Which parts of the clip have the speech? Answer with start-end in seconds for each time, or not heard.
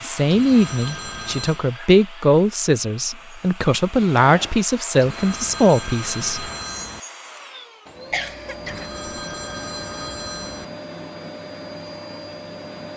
0.0-6.5.